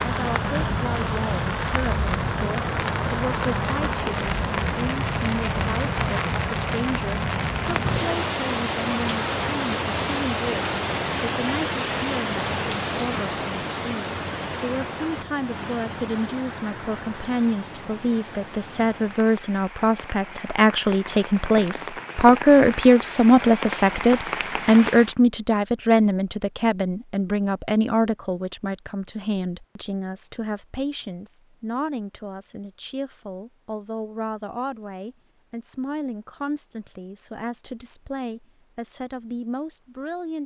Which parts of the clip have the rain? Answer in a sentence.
The rain can be heard from 0.0 to 25.1 s.